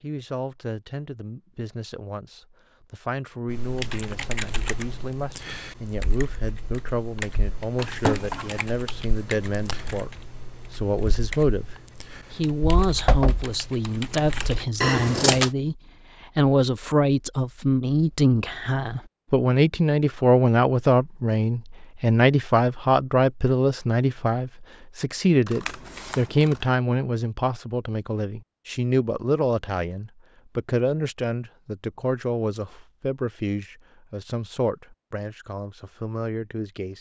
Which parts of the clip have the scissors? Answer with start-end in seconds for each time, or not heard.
7.8-8.7, 14.8-15.5, 25.4-26.6.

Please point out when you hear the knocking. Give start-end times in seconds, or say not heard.
12.8-13.4.